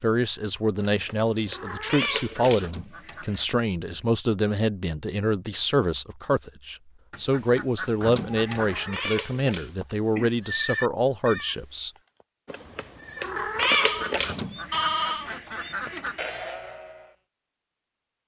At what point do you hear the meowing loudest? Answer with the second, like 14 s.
14 s.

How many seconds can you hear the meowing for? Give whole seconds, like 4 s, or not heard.
6 s.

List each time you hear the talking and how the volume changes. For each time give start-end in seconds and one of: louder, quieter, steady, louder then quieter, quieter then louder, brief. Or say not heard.
0.0-11.9 steady.